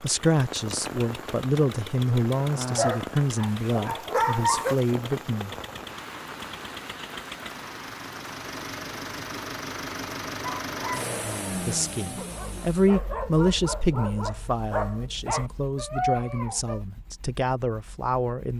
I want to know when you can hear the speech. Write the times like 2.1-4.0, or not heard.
0.0-5.5, 11.7-18.5.